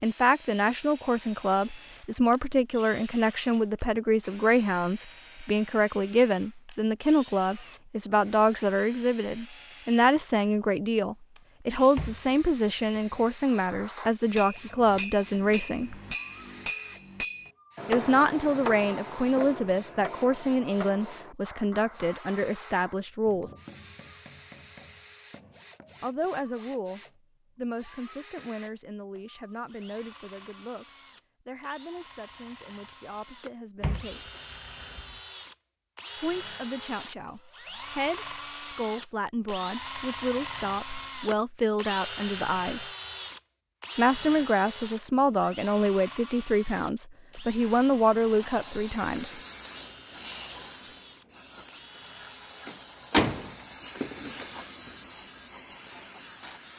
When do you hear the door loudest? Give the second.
53 s.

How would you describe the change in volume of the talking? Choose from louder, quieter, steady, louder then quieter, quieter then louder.
quieter then louder.